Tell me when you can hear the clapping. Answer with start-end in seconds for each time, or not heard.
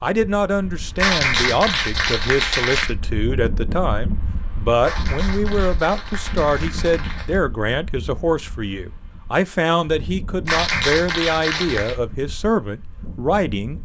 0.9-3.0, 4.8-7.4, 10.4-11.9.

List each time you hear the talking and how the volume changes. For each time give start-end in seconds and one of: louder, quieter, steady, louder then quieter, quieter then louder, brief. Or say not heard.
0.0-13.7 steady.